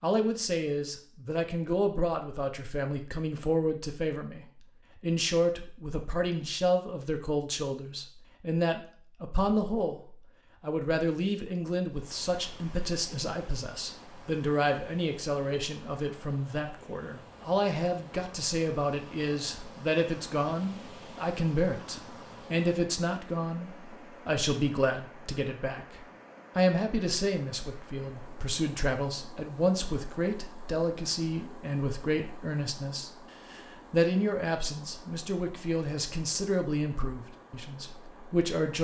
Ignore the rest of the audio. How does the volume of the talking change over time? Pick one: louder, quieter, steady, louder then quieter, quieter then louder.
steady.